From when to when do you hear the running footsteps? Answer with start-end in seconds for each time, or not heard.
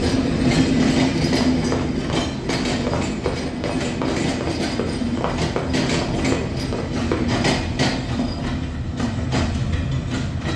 1.3-7.5.